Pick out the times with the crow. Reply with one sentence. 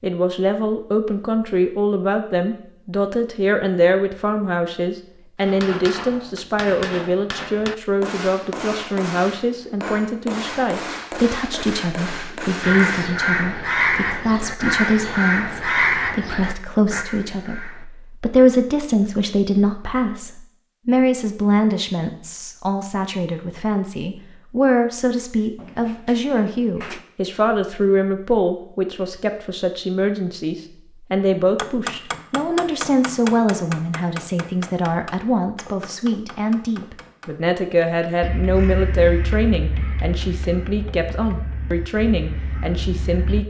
You can hear the crow from 12.6 to 17.9 s and from 38.2 to 43.4 s.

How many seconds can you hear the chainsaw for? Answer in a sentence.
The chainsaw can't be heard in this clip.